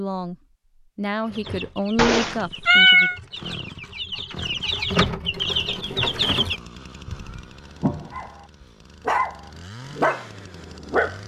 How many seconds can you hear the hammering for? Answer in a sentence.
The hammering can't be heard in this clip.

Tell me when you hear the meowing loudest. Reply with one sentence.
The volume of the meowing peaks at 3 seconds.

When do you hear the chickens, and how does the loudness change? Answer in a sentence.
The chickens can be heard from 1.2 to 6.5 s, getting louder.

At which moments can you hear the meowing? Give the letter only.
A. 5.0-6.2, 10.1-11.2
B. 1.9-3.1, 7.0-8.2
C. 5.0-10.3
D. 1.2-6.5
B.